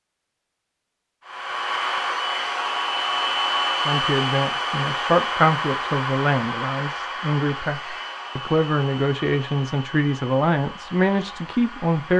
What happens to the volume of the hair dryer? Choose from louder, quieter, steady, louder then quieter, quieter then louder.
quieter.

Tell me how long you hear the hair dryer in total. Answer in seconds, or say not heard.
11 s.